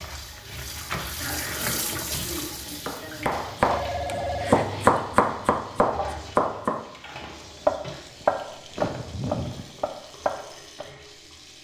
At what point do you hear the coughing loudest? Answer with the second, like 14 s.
9 s.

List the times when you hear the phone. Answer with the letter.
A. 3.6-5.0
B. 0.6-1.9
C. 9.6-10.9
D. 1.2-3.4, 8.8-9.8
A.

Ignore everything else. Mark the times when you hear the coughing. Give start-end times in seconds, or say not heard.
1.2-3.4, 8.8-9.8.